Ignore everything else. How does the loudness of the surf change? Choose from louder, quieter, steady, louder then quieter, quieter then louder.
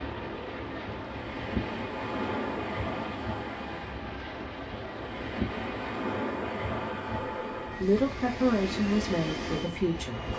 steady.